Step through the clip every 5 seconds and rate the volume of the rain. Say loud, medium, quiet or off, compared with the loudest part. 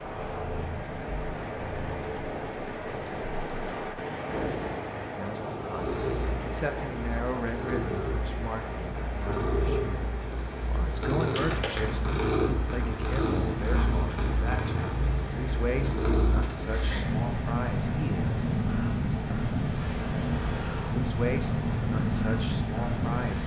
loud, loud, medium, medium, medium.